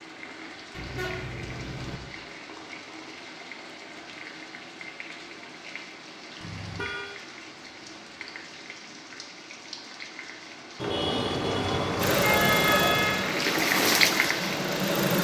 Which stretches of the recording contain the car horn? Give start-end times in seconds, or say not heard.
0.7-2.0, 6.4-7.2, 10.8-13.2.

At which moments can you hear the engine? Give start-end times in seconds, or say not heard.
11.9-15.1.